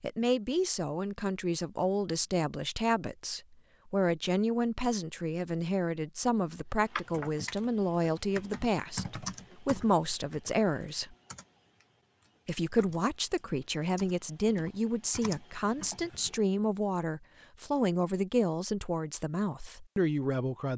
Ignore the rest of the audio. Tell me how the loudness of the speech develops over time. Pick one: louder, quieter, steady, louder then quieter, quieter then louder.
steady.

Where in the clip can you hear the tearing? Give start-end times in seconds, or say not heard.
not heard.